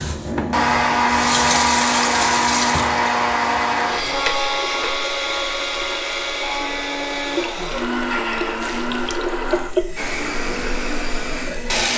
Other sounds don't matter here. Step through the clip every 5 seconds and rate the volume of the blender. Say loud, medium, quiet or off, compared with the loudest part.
loud, medium, medium.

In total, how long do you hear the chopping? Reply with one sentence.
The chopping can't be heard in this clip.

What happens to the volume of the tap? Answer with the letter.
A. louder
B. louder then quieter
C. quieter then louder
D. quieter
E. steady
C.